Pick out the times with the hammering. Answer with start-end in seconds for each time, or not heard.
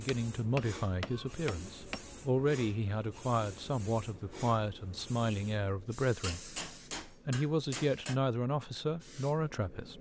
0.1-2.0, 6.2-8.2.